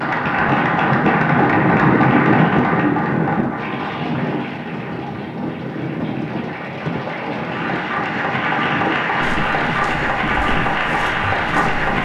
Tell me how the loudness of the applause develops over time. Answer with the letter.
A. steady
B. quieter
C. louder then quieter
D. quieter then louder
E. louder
D.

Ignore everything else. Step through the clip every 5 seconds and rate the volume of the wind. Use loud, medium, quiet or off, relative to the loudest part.
loud, medium, medium.